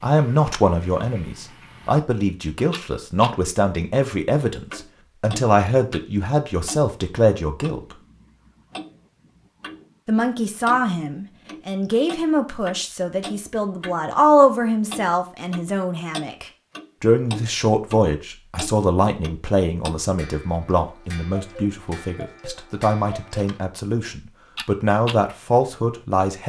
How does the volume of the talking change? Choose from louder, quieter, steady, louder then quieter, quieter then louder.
steady.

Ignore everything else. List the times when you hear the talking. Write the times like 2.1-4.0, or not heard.
0.0-8.0, 10.1-26.4.